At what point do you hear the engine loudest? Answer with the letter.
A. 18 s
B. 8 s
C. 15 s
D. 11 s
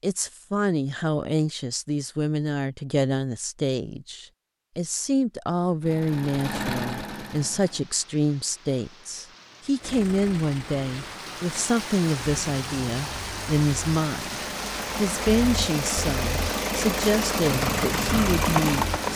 A.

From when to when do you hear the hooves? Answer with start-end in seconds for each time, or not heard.
17.5-19.1.